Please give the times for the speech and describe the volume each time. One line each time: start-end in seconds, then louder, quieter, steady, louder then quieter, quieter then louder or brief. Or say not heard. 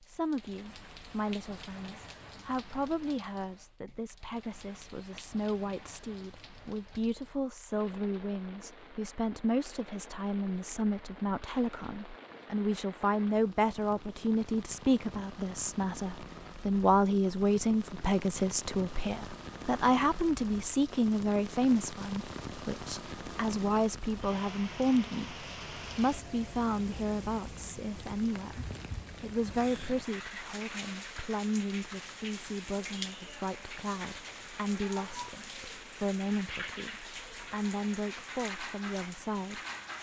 0.0-39.6 louder then quieter.